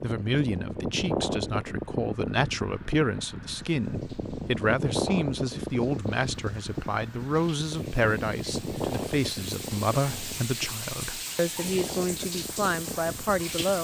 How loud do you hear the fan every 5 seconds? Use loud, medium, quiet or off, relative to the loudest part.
loud, loud, medium.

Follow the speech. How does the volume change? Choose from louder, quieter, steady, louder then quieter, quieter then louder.
steady.